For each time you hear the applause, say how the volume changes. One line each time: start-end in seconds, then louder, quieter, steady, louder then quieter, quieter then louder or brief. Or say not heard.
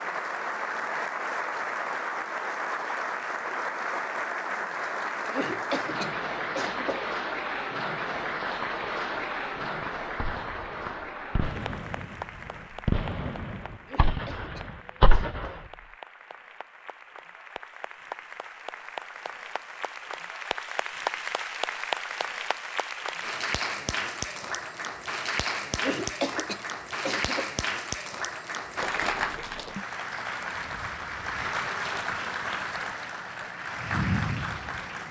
0.0-35.0 quieter then louder.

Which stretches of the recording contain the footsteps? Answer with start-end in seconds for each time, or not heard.
not heard.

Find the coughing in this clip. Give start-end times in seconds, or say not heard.
5.3-7.1, 13.8-15.7, 25.8-27.5.